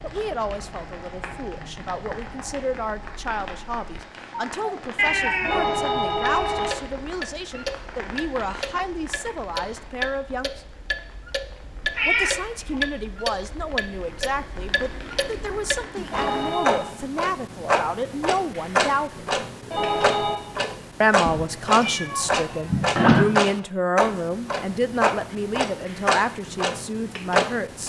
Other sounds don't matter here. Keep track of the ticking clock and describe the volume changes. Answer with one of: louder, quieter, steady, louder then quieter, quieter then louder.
louder.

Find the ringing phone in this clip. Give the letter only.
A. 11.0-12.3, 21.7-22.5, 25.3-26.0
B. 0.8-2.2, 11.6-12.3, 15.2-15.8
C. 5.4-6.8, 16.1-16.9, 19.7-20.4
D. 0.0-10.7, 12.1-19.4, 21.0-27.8
C.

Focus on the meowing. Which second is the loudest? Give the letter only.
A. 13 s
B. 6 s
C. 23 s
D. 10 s
C.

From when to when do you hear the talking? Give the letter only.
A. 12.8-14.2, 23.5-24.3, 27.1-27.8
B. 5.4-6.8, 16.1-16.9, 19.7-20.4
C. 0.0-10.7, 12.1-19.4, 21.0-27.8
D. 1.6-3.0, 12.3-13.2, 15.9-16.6
C.